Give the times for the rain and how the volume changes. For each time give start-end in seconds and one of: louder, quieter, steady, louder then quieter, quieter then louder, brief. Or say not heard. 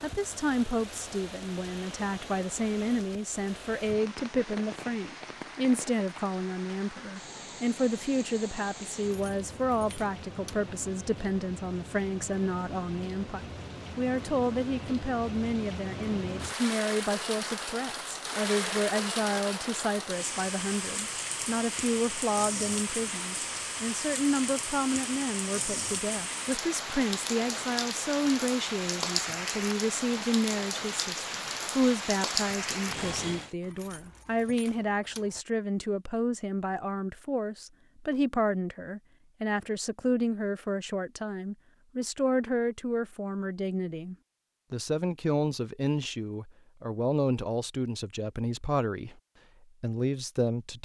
0.0-33.5 louder.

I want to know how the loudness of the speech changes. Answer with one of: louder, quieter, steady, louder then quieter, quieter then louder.
steady.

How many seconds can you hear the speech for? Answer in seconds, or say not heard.
51 s.